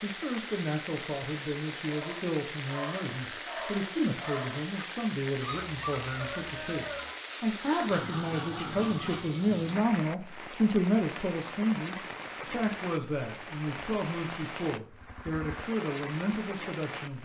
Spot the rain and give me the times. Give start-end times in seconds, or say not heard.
0.0-17.2.